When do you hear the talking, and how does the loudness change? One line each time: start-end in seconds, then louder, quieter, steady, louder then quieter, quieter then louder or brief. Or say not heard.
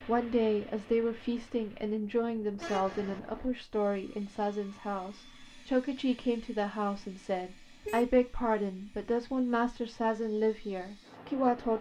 0.1-11.7 steady.